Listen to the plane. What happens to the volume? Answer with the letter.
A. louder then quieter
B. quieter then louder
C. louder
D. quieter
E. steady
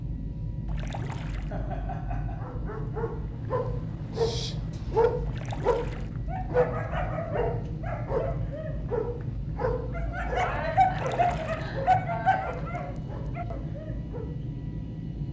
E.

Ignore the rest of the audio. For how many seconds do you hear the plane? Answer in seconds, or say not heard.
15 s.